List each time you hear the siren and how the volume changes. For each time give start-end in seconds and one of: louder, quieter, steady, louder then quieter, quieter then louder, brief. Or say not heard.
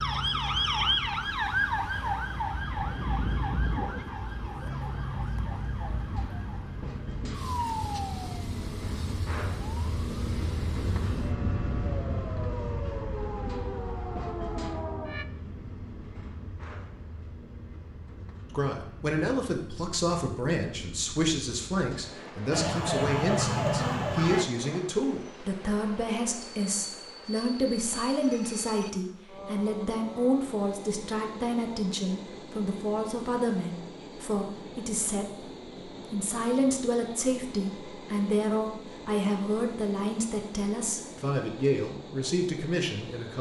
0.0-15.2 quieter then louder
22.5-24.4 brief.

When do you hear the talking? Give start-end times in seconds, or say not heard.
18.5-43.3.